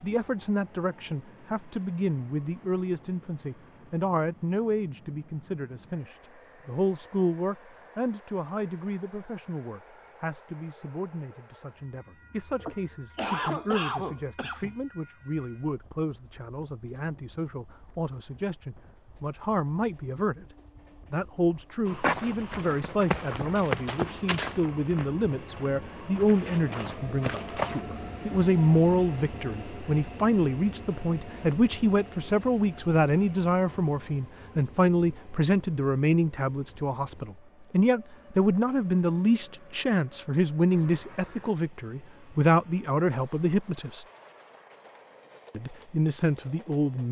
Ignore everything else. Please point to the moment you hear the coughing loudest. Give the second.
13 s.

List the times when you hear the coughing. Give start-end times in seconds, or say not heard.
12.6-14.8, 40.7-41.6.